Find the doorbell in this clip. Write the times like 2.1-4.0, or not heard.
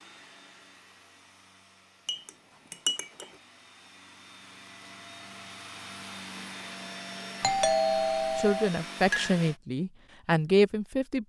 7.4-8.7.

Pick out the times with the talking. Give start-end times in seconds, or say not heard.
8.3-11.2.